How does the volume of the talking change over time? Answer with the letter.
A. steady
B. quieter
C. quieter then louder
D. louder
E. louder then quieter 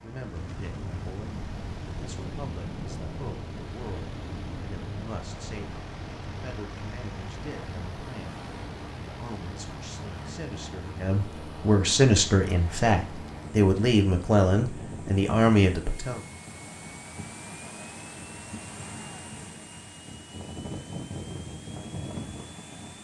D.